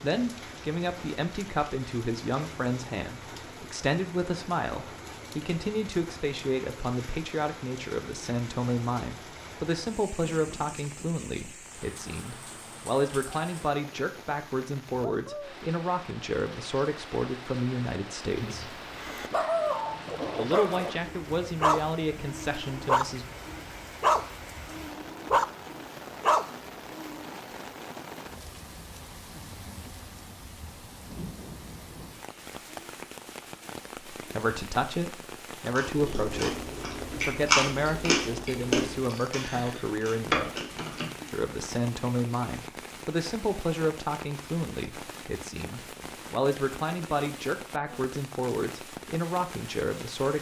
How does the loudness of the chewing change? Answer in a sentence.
The volume of the chewing goes up, then down.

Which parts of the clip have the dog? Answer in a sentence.
You can hear the dog from 18.4 to 27.1 s.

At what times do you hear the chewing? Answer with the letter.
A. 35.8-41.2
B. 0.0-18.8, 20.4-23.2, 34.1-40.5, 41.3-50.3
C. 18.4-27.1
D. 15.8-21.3
A.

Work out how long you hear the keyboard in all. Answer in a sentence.
The keyboard can be heard for 2 seconds in total.